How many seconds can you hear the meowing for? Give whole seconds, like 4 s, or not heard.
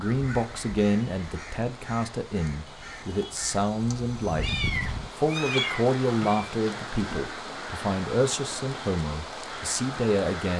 2 s.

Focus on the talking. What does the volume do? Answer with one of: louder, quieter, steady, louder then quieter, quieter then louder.
steady.